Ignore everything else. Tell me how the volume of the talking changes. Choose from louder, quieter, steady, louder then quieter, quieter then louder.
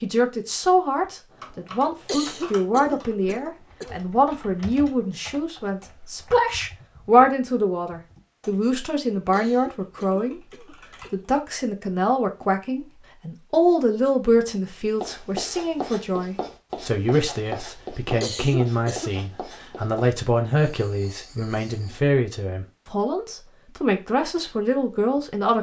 steady.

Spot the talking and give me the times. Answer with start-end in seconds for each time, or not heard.
0.0-10.4, 11.1-25.5.